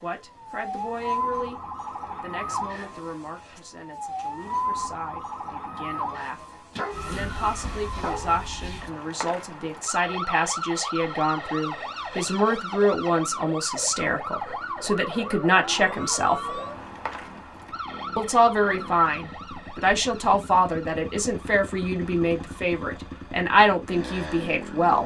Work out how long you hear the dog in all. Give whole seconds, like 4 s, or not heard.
2 s.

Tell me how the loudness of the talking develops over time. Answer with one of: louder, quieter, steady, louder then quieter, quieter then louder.
louder.